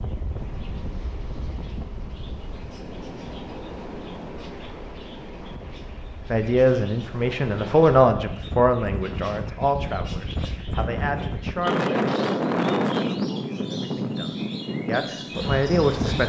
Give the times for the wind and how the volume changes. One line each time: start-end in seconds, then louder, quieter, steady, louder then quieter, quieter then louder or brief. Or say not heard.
0.0-16.2 louder.